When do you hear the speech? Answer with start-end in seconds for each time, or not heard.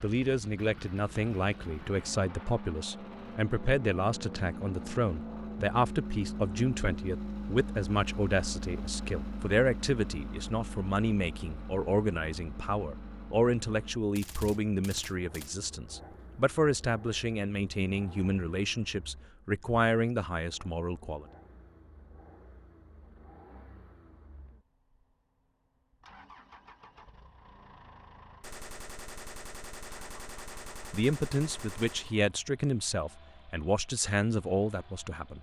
0.0-21.2, 30.9-35.3.